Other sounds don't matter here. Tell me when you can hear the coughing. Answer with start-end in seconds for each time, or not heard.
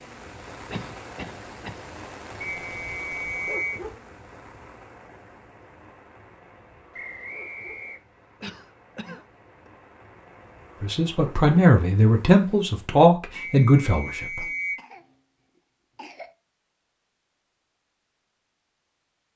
0.7-1.9, 8.4-9.7, 14.3-16.4.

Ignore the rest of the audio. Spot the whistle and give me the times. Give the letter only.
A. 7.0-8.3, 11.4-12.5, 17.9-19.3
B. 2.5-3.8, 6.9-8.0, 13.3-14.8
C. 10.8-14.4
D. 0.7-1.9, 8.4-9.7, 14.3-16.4
B.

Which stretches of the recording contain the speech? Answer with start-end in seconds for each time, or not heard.
10.8-14.4.